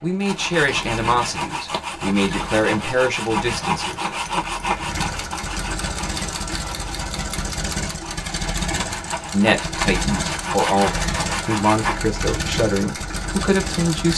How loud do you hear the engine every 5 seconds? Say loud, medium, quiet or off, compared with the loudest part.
medium, loud, loud.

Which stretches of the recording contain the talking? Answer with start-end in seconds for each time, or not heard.
0.0-4.1, 9.3-14.1.